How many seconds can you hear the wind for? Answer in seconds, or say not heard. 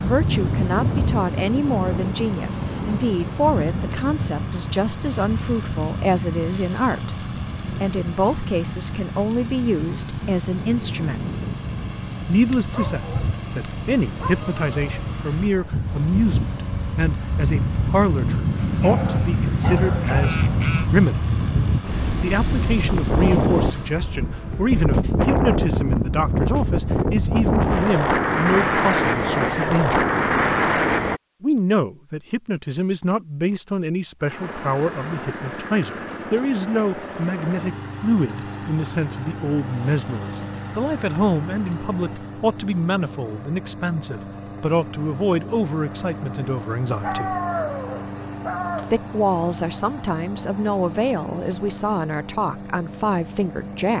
31 s.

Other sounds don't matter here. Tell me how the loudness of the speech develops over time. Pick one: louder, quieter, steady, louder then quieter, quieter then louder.
steady.